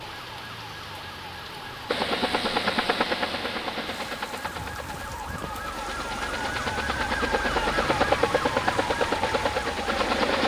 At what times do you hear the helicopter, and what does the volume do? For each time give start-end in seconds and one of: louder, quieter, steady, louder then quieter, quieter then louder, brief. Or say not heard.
1.9-10.4 quieter then louder.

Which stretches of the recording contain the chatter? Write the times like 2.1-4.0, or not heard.
not heard.